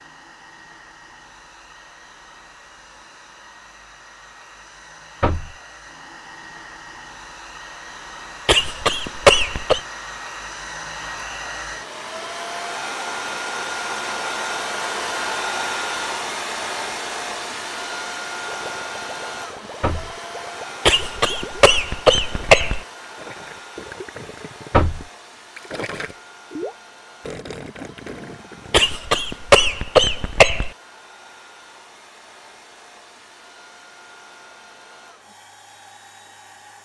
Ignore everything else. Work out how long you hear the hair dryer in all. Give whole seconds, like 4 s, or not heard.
37 s.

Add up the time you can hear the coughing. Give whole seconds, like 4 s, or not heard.
5 s.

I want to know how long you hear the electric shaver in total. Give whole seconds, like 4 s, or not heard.
not heard.